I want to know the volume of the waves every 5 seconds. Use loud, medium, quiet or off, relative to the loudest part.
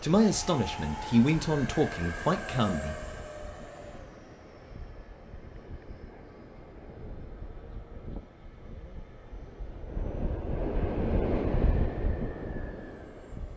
quiet, quiet, loud.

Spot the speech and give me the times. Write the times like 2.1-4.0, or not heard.
0.0-3.0.